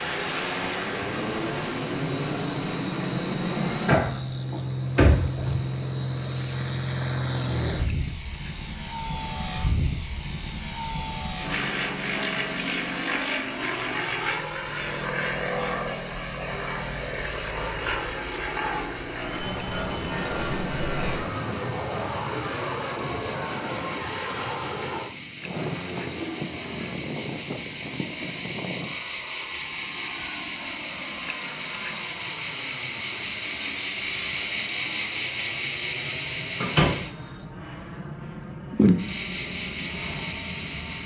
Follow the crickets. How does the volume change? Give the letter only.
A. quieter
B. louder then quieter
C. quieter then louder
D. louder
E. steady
D.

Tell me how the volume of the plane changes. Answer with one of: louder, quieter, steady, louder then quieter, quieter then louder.
quieter.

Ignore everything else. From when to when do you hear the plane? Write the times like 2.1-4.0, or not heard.
0.0-41.0.